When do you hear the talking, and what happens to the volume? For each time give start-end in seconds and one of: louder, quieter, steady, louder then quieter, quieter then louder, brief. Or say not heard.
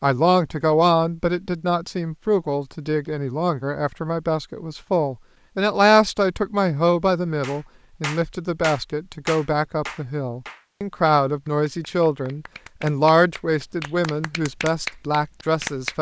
0.0-15.9 steady.